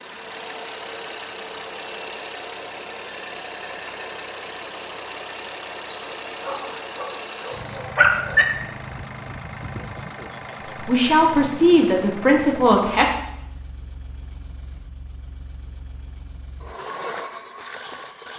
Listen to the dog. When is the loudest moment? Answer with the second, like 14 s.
8 s.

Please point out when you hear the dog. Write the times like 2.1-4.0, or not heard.
6.5-8.4.